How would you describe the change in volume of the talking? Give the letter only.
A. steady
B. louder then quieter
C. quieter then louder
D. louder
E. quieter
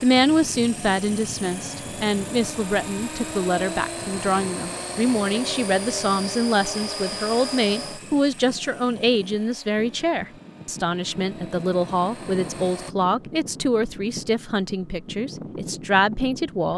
A.